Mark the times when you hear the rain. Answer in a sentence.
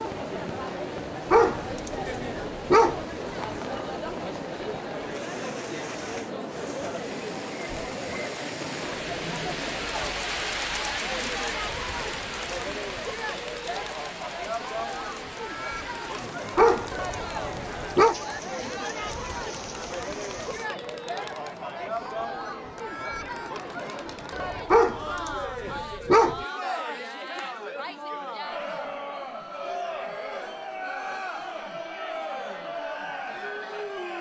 The rain can be heard from 0.0 to 20.6 s.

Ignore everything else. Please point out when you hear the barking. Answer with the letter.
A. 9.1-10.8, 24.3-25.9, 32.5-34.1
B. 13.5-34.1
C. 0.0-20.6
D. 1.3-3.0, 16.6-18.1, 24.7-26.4
D.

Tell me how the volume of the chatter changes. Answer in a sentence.
The loudness of the chatter stays about the same.